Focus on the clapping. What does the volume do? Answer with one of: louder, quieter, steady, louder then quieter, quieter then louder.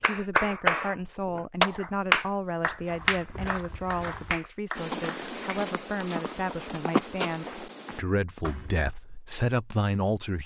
quieter.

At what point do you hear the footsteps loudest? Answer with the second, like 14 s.
7 s.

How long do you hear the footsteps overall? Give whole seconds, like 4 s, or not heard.
6 s.